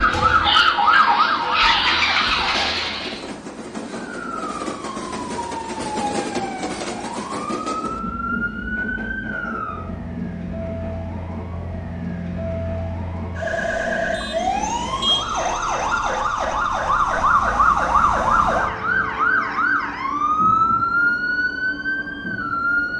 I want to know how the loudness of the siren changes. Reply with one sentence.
The volume of the siren goes down, then up.